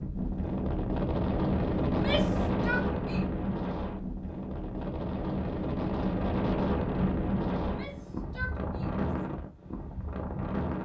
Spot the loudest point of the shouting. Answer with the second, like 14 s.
2 s.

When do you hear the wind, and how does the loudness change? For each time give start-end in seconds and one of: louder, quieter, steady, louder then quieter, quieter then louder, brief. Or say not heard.
0.0-10.8 quieter.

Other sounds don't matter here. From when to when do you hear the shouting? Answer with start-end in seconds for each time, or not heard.
1.9-3.3, 7.6-9.1.